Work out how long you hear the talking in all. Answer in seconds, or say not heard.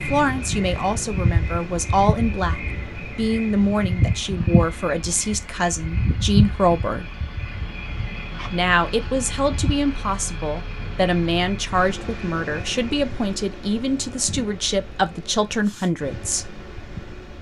15 s.